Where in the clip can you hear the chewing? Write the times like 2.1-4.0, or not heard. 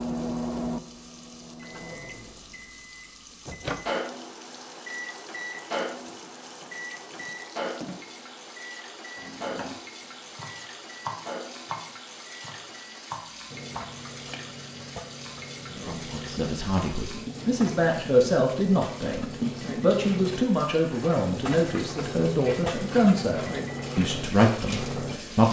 not heard.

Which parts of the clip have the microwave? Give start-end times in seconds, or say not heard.
0.0-25.4.